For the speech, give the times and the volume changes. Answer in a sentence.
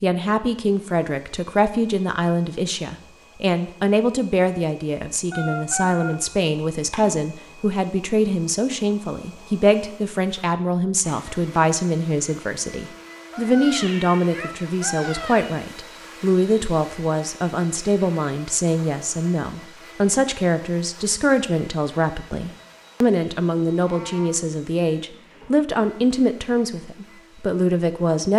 You can hear the speech from 0.0 to 28.3 s, at a steady volume.